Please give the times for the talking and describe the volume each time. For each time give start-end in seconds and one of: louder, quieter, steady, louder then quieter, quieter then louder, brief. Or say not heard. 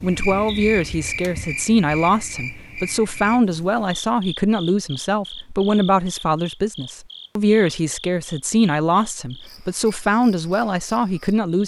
0.0-11.6 steady.